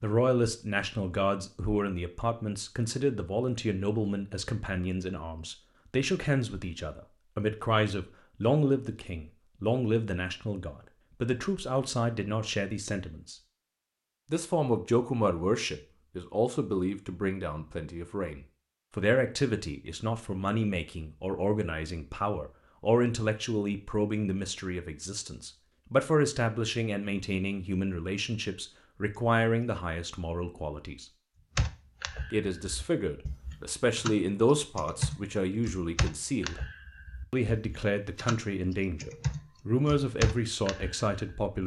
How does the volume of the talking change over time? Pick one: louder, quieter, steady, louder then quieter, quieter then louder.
steady.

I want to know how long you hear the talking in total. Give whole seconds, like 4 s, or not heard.
39 s.